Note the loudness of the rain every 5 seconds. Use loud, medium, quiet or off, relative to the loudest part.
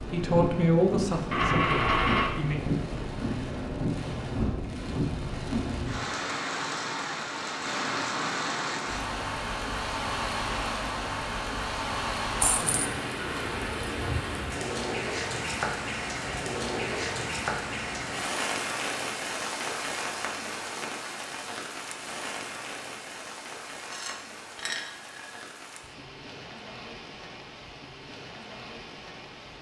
loud, loud, loud, loud, medium, quiet.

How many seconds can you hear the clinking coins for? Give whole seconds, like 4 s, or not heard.
3 s.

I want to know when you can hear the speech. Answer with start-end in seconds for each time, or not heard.
0.1-2.6.